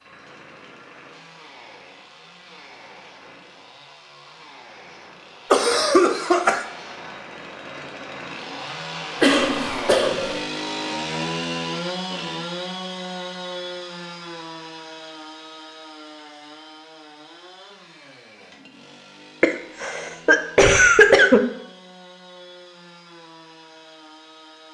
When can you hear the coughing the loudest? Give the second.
21 s.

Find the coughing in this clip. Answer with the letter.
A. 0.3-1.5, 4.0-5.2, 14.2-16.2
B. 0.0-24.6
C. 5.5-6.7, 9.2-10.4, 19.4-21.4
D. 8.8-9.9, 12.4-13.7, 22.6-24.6
C.